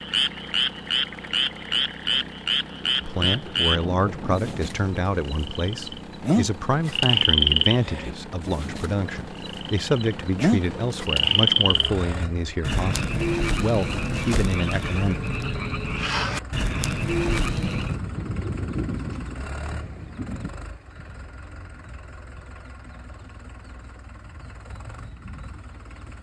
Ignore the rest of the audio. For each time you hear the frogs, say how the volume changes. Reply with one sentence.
You can hear the frogs from 0.0 to 18.0 s, at a steady volume.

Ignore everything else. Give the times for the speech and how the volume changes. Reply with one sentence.
You can hear the speech from 3.0 to 15.2 s, at a steady volume.